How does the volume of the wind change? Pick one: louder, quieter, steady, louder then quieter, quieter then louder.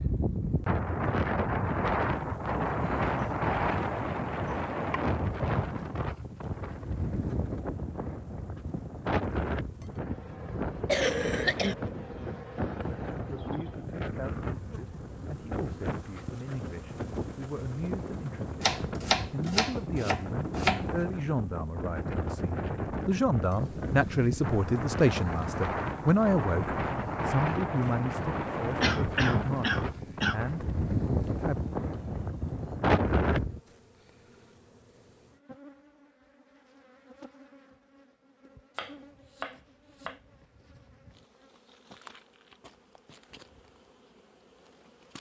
quieter then louder.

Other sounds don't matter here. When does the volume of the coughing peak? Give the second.
11 s.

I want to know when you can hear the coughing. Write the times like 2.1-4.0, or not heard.
10.8-11.8, 28.8-30.4.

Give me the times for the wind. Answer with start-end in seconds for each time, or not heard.
0.0-33.6.